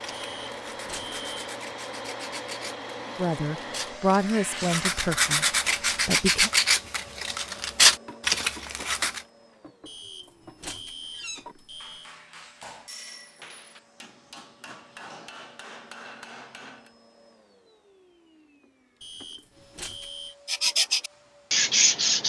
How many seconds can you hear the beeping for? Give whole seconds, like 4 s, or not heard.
5 s.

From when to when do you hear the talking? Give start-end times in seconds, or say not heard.
3.1-5.5, 6.0-6.5.